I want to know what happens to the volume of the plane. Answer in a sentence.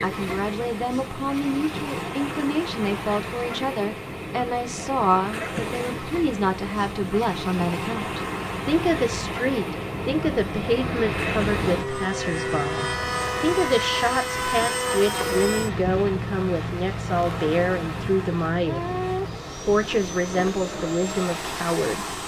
The volume of the plane goes up, then down.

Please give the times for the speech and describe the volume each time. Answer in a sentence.
The speech can be heard from 0.0 to 18.9 s, at a steady volume; and briefly from 19.6 to 22.1 s.